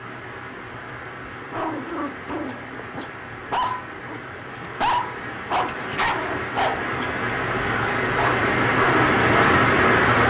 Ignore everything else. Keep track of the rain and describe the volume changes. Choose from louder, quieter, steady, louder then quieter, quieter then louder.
louder.